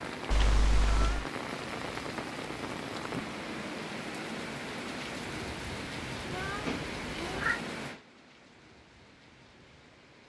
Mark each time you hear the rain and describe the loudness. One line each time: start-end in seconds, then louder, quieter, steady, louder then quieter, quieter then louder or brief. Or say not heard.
0.0-10.2 quieter.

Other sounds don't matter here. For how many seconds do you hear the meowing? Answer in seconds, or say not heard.
2 s.